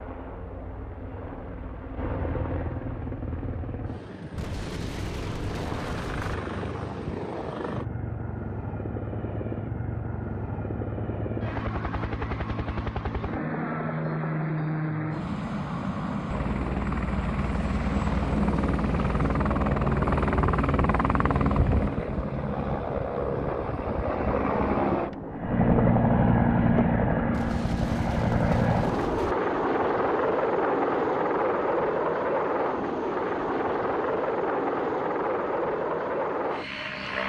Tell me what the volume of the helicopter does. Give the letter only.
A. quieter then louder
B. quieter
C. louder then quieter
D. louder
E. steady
D.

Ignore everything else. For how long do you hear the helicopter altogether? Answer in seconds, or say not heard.
37 s.